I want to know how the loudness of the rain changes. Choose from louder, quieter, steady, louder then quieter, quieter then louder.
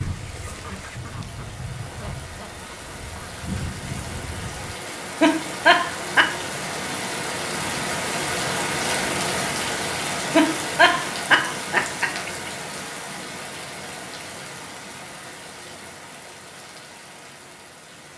louder then quieter.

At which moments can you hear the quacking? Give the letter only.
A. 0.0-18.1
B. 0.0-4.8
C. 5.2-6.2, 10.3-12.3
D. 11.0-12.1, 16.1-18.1
B.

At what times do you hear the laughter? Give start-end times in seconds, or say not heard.
5.2-6.2, 10.3-12.3.